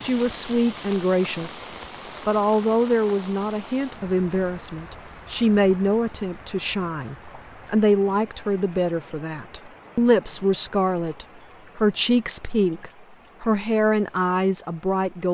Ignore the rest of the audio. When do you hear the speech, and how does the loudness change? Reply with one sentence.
You can hear the speech briefly from 0.0 to 1.6 s; and from 2.2 to 15.2 s, at a steady volume.